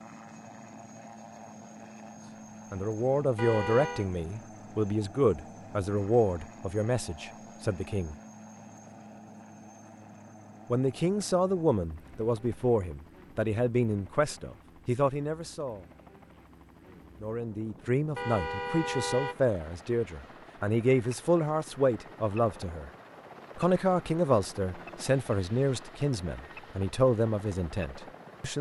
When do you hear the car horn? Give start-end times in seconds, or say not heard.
3.4-4.1, 18.1-19.4.